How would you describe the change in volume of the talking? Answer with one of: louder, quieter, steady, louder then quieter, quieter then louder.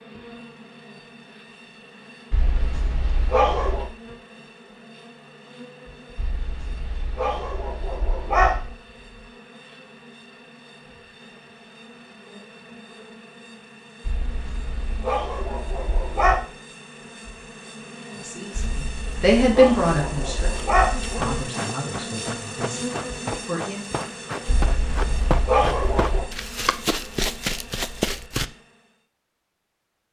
quieter.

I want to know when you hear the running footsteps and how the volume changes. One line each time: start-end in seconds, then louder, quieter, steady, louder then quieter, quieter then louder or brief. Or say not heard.
21.2-28.4 louder.